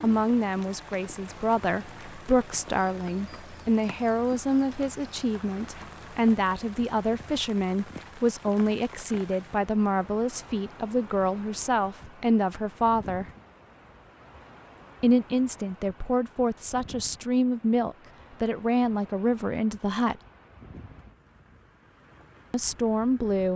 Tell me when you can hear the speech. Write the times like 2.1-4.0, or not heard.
0.0-13.2, 15.0-20.2, 22.5-23.5.